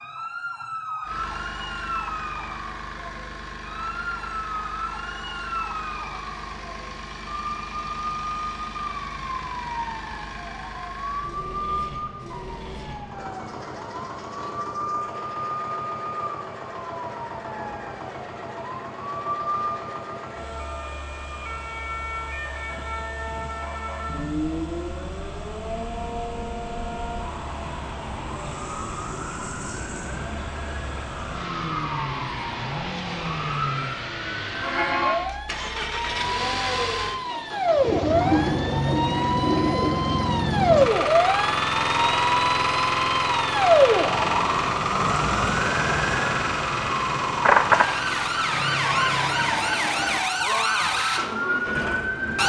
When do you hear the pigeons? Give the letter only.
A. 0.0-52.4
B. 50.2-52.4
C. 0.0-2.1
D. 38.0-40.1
D.